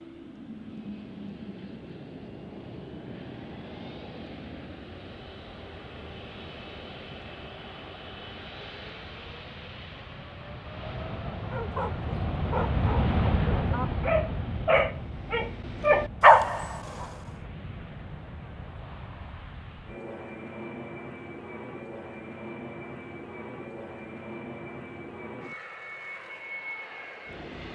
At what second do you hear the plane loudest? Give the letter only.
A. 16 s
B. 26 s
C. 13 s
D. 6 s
C.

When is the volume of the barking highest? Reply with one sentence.
The loudest moment of the barking is at 16 seconds.